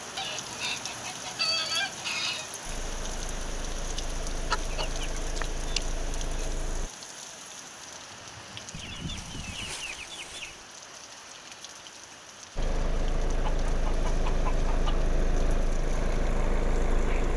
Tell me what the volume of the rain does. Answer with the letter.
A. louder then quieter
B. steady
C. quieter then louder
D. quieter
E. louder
D.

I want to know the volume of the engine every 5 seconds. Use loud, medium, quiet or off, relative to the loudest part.
medium, medium, loud, loud.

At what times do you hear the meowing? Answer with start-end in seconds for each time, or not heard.
not heard.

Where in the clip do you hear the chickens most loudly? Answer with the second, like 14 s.
2 s.